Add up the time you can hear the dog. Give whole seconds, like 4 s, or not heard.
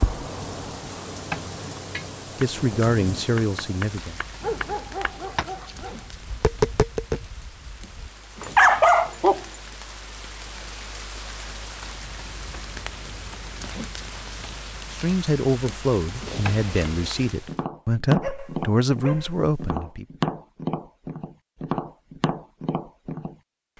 4 s.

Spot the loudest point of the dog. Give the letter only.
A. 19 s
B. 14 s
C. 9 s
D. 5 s
C.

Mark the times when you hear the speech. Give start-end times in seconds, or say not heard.
2.4-4.2, 14.9-20.1.